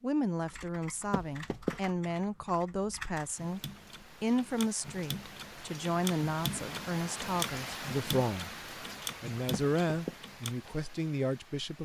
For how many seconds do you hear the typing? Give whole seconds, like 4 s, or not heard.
10 s.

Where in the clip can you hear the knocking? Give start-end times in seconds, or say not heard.
1.1-1.8, 9.5-10.2.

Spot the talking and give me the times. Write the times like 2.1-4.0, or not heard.
0.0-3.6, 4.2-8.5, 9.2-11.7.